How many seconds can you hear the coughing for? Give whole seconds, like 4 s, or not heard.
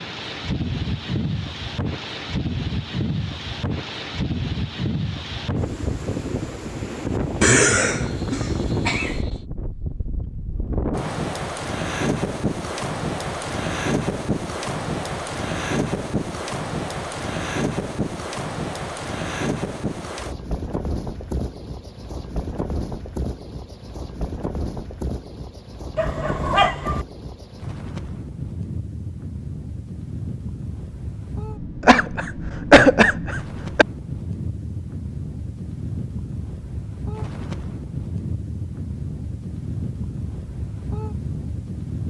4 s.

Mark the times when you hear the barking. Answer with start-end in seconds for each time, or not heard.
25.9-27.1.